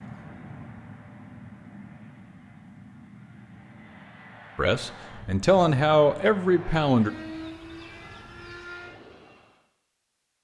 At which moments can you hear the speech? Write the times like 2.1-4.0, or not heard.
4.5-7.1.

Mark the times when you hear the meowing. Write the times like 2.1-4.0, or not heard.
not heard.